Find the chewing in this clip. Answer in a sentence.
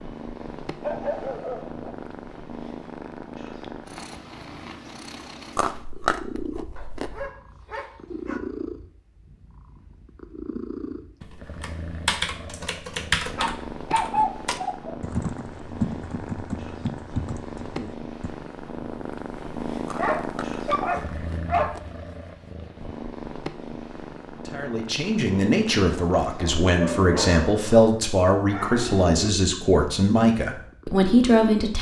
The chewing can be heard from 5.5 to 7.3 s and from 19.9 to 21.9 s.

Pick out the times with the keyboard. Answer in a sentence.
You can hear the keyboard from 11.2 to 18.3 s.